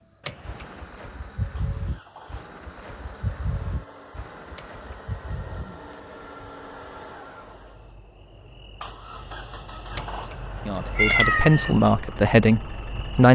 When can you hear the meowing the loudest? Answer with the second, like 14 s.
11 s.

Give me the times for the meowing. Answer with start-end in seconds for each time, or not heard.
0.2-0.7, 4.5-5.5, 9.9-11.7.